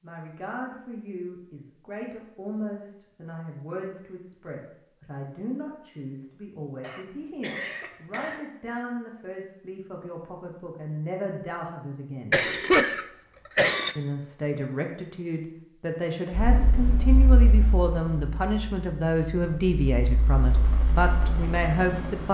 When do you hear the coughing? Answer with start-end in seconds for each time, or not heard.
6.8-8.4, 12.3-13.9.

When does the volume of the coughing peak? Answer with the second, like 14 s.
13 s.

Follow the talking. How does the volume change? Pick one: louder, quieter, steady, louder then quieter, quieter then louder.
louder.